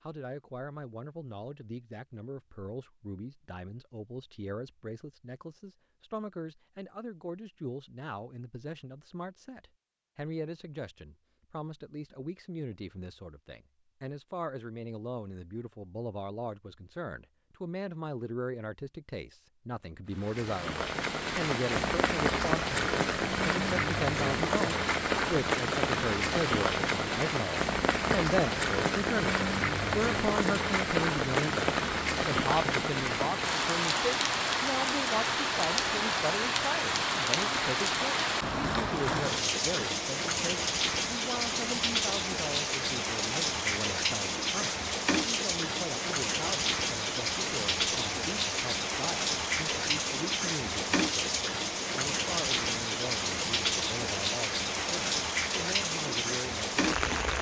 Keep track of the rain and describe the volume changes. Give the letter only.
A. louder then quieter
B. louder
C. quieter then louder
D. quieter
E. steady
E.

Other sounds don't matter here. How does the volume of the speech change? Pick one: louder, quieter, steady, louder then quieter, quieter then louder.
louder then quieter.